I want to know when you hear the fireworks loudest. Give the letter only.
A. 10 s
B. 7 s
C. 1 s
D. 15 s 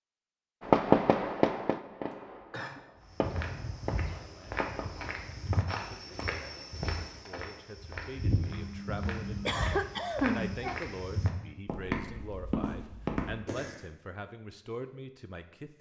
C.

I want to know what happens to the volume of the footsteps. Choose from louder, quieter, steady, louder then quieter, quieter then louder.
louder.